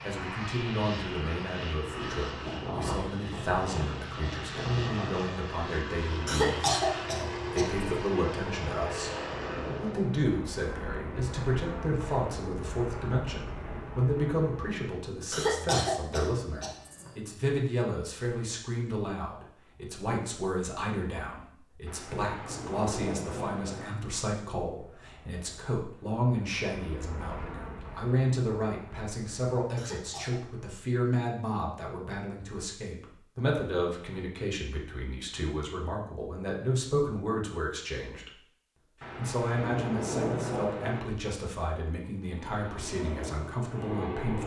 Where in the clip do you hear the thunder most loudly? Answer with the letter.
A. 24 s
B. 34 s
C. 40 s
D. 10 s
C.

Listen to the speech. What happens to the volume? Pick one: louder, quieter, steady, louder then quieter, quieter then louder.
steady.